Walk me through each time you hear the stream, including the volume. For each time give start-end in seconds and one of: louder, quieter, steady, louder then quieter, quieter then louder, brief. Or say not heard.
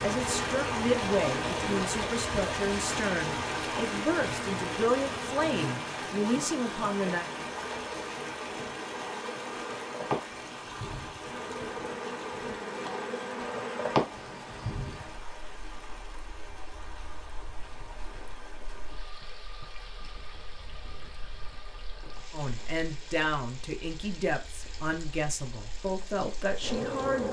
0.0-27.2 quieter.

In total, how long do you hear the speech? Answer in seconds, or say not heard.
12 s.